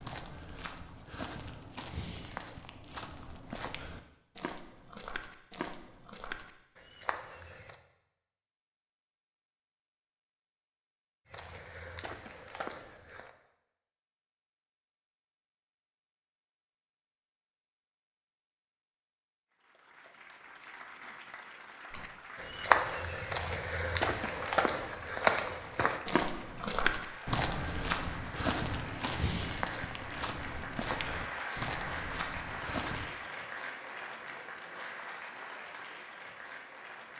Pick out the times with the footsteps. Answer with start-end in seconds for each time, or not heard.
0.0-7.8, 11.2-13.3, 21.9-33.1.